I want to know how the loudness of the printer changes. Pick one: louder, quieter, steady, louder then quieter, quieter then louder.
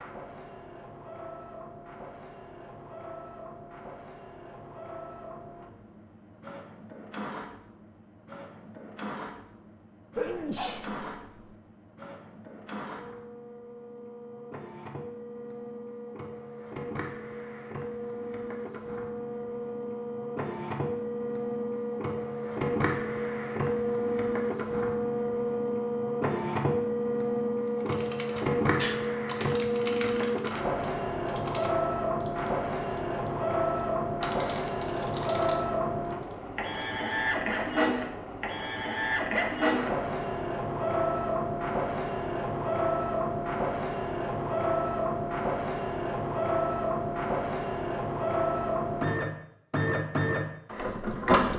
louder.